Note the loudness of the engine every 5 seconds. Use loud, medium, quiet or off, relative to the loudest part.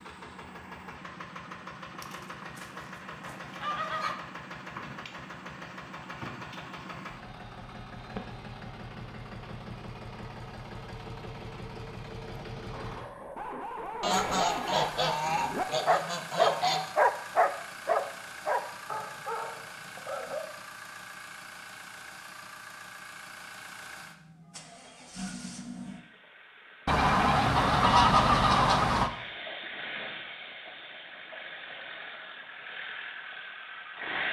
loud, loud, loud, loud, medium, loud, loud.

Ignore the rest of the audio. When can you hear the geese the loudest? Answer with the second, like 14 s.
28 s.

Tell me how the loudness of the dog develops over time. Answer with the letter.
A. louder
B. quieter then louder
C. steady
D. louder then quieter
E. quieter
D.